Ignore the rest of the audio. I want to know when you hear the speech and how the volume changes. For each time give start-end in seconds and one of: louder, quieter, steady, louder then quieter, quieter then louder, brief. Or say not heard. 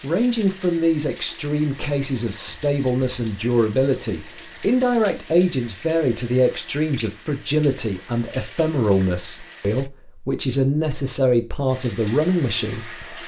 0.0-13.1 steady.